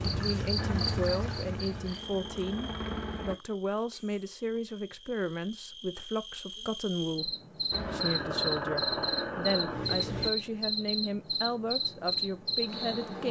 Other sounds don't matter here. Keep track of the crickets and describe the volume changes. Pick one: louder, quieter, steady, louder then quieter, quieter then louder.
quieter then louder.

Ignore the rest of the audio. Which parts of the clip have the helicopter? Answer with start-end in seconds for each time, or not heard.
0.0-3.4, 7.7-10.3.